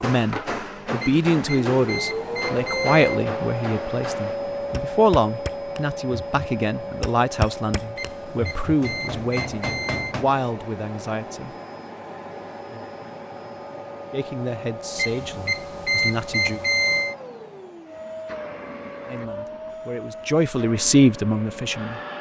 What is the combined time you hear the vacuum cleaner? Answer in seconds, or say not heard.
22 s.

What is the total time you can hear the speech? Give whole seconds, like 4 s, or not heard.
17 s.